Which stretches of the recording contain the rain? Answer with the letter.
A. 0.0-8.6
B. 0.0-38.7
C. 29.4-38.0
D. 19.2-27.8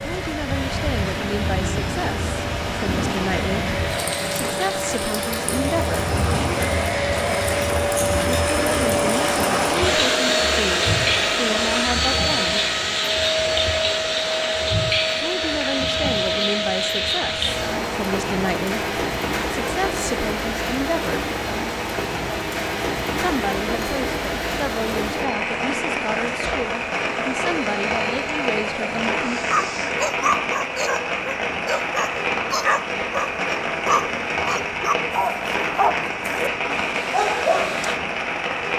B.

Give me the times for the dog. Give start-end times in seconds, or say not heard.
29.4-38.0.